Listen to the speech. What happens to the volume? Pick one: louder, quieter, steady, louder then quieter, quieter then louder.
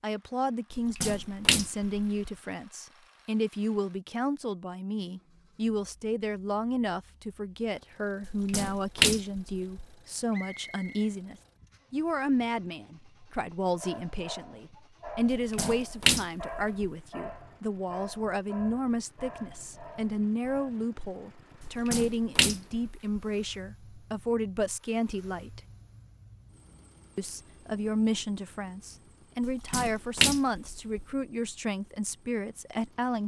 steady.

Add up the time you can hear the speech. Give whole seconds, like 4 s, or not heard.
32 s.